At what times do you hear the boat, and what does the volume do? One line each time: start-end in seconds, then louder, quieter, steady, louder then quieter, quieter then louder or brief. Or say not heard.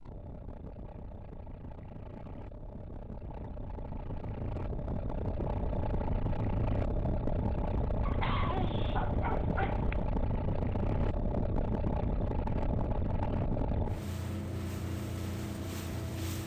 0.0-16.4 louder.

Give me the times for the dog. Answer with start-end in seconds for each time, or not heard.
8.1-10.1.